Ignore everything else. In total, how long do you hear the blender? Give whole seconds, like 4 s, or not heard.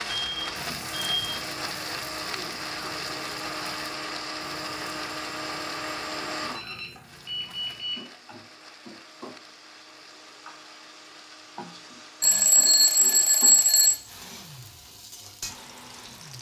16 s.